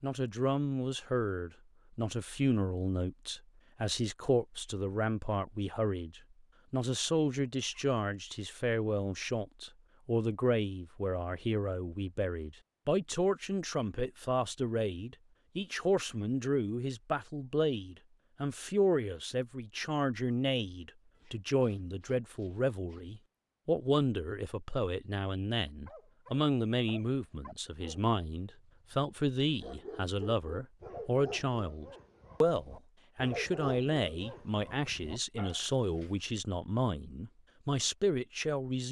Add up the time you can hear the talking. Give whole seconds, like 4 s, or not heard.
39 s.